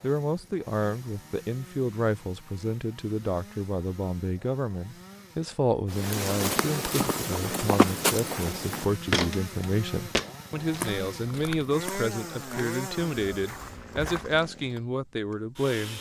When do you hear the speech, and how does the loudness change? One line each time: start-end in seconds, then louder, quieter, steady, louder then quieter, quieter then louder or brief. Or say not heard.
0.0-15.9 steady.